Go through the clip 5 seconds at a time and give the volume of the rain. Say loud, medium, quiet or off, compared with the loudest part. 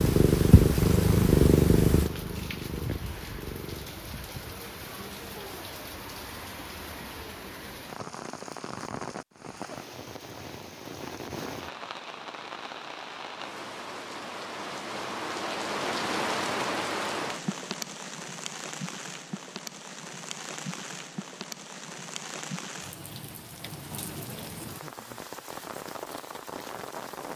medium, medium, medium, loud, medium, medium.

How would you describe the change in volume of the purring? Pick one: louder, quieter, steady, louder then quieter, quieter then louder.
quieter.